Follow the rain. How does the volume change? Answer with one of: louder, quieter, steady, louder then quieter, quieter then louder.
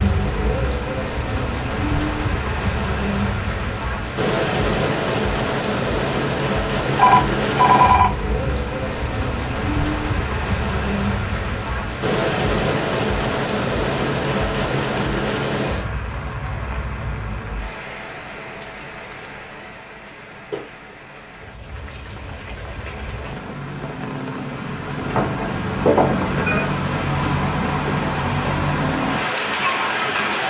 quieter then louder.